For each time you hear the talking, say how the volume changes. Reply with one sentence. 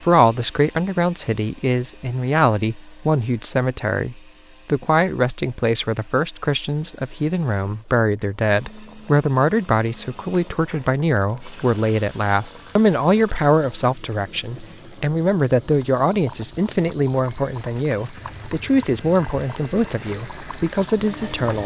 The talking can be heard from 0.0 to 21.6 s, at a steady volume.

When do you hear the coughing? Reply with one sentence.
The coughing can't be heard in this clip.